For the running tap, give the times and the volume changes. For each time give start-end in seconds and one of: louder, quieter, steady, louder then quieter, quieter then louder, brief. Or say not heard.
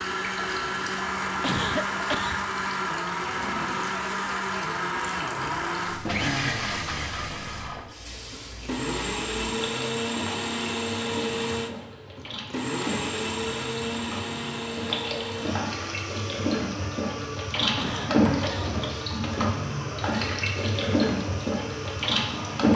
0.1-22.7 louder.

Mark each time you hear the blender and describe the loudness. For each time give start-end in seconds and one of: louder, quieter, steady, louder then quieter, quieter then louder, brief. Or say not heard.
0.0-22.7 quieter.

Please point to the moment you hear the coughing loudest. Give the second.
2 s.